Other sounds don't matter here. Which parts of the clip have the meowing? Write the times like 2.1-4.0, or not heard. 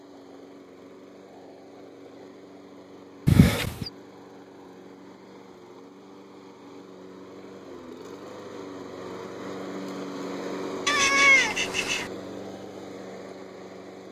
3.2-3.9, 10.8-12.1.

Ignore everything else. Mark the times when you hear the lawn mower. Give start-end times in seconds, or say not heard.
0.0-14.0.